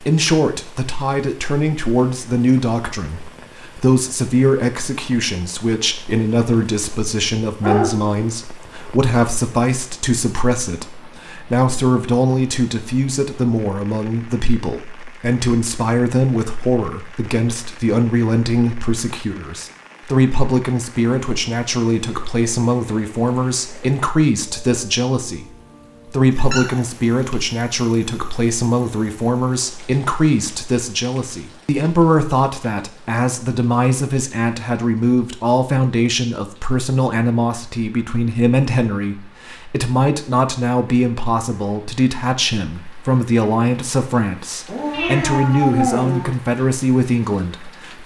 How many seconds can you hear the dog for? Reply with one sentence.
The dog can be heard for 4 seconds in total.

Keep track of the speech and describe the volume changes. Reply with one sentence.
The volume of the speech stays about the same.